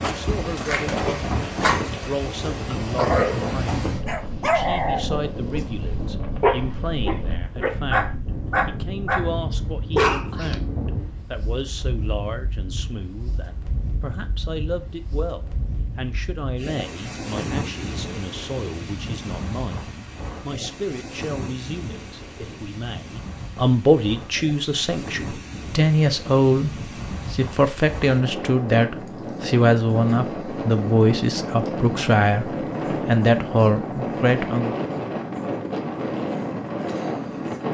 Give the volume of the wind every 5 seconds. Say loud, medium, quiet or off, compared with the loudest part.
loud, medium, medium, medium, medium, medium, loud, loud.